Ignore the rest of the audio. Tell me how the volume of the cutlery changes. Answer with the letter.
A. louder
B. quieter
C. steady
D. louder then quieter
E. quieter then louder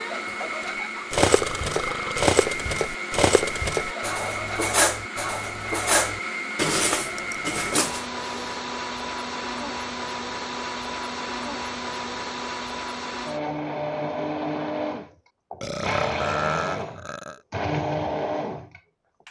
C.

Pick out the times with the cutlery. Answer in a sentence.
You can hear the cutlery from 1.1 to 8.1 s.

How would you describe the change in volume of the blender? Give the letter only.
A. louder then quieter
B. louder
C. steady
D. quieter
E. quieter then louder
C.